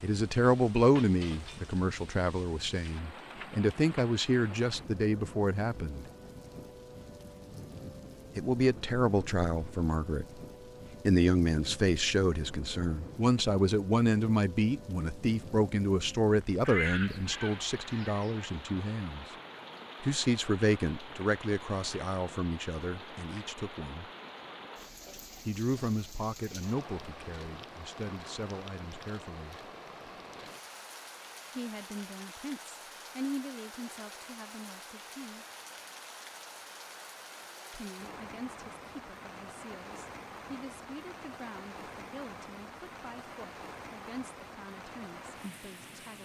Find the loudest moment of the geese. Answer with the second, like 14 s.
17 s.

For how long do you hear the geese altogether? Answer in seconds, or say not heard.
2 s.